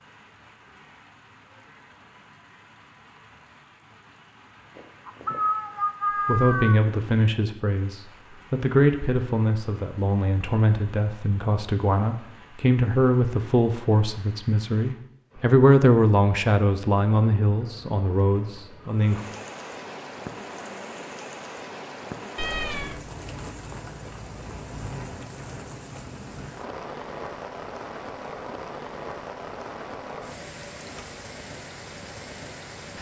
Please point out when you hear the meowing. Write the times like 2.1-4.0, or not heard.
4.8-6.8, 22.4-23.0.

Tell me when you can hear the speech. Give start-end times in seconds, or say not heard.
6.2-19.2.